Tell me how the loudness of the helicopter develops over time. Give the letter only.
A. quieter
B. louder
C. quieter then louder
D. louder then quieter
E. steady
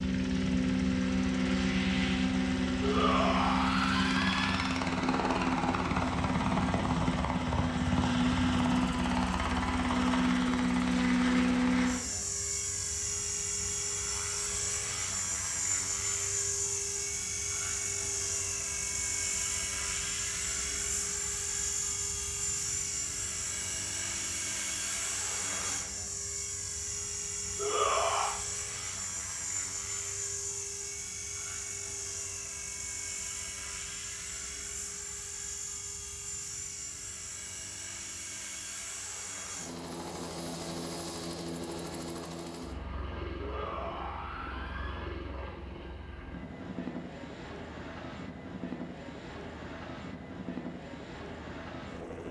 A.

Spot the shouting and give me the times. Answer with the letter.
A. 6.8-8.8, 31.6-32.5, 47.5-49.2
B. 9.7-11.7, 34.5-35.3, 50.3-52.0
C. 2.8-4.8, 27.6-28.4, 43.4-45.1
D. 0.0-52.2
C.